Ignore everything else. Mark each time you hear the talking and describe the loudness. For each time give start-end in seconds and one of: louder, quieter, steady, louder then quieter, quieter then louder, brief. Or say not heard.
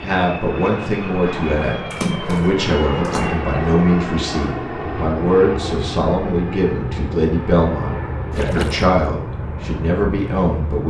0.0-10.8 steady.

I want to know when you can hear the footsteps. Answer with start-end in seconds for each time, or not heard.
not heard.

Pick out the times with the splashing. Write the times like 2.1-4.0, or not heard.
1.9-3.4, 8.3-8.9.